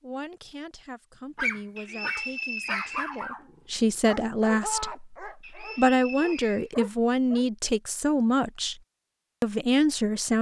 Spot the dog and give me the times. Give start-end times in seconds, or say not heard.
1.4-7.5.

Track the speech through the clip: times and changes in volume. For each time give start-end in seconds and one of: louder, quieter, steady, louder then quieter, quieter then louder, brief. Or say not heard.
0.0-8.8 louder
9.4-10.3 brief.